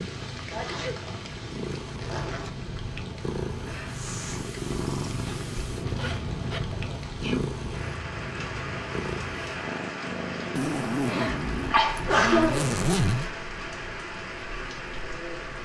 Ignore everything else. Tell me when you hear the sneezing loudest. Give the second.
12 s.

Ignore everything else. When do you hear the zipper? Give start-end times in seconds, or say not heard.
0.5-2.5, 5.2-6.8, 10.6-13.3.